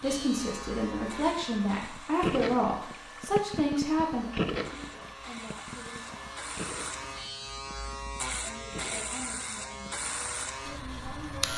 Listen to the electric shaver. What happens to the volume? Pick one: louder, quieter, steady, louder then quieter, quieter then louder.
quieter then louder.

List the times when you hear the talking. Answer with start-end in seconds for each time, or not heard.
0.0-6.3, 8.4-10.0, 10.6-11.5.